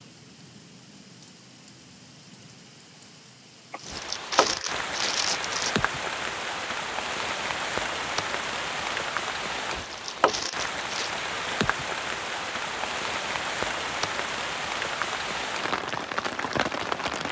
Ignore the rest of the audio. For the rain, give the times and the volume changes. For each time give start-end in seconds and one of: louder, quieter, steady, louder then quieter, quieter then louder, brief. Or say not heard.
0.0-17.2 louder.